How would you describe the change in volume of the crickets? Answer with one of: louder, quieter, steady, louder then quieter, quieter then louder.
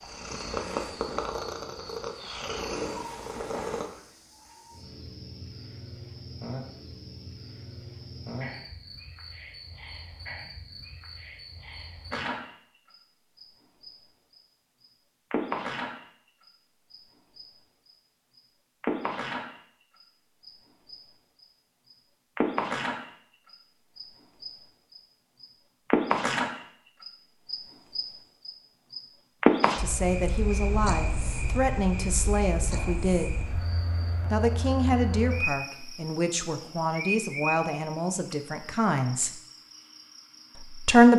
louder then quieter.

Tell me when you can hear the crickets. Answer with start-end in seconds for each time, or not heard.
0.0-41.1.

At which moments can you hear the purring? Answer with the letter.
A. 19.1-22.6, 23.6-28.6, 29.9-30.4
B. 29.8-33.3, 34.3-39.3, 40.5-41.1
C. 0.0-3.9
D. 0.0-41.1
C.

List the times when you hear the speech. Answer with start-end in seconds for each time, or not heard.
29.8-33.3, 34.3-39.3, 40.5-41.1.